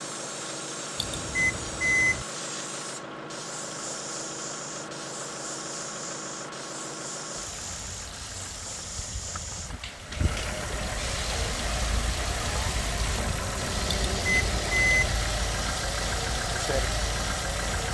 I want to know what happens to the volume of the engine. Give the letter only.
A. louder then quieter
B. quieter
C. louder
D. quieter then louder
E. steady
C.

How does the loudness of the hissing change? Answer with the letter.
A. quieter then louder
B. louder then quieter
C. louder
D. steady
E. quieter
D.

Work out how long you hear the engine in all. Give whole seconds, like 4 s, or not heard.
18 s.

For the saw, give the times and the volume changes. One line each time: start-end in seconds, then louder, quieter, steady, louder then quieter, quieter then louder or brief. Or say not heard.
not heard.